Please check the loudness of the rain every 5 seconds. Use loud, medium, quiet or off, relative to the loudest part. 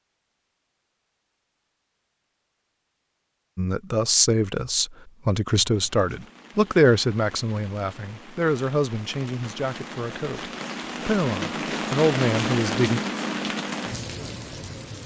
off, quiet, loud.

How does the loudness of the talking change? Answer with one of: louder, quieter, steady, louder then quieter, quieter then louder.
quieter then louder.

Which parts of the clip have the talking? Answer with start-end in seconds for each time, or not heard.
3.5-13.0.